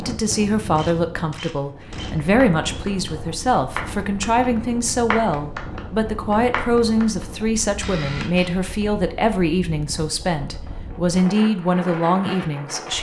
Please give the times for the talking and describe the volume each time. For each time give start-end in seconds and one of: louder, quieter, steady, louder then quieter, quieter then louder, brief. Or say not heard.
0.0-12.9 steady.